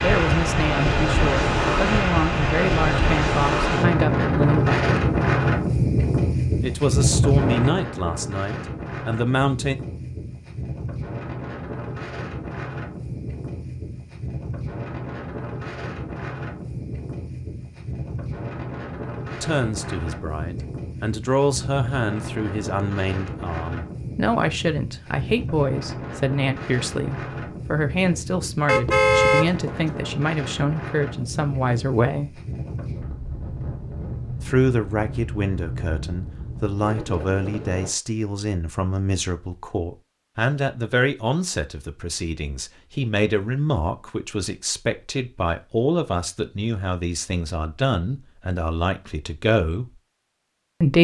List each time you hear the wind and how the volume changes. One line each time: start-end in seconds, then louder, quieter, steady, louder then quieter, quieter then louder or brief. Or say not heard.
0.0-37.9 quieter.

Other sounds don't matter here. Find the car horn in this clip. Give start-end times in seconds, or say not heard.
28.6-29.9.